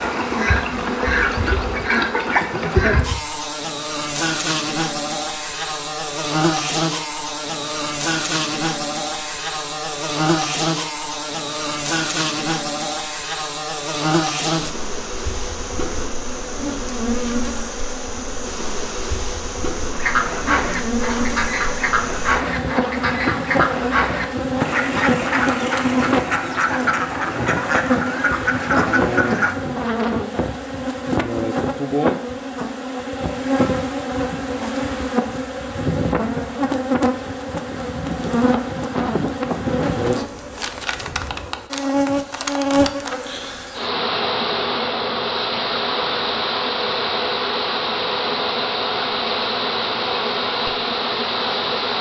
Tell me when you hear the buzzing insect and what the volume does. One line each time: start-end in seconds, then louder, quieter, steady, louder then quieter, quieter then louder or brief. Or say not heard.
0.0-51.9 steady.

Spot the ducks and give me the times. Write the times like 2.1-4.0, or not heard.
0.0-3.0, 19.9-29.6.